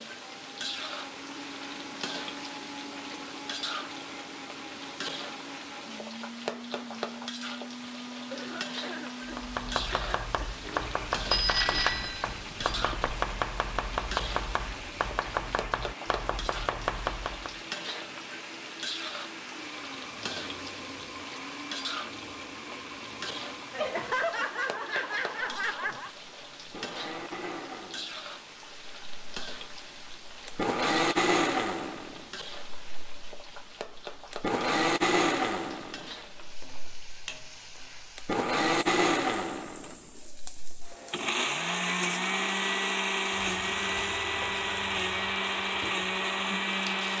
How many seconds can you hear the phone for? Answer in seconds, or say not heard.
2 s.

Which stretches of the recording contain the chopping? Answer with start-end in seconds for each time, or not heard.
9.2-17.6.